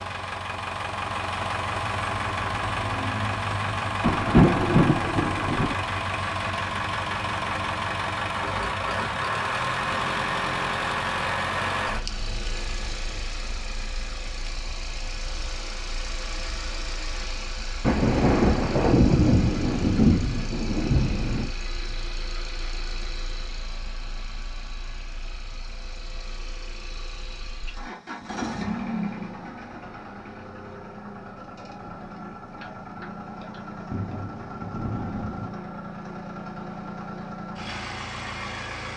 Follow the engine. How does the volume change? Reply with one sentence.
The loudness of the engine goes down.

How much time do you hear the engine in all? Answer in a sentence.
The engine can be heard for 39 seconds in total.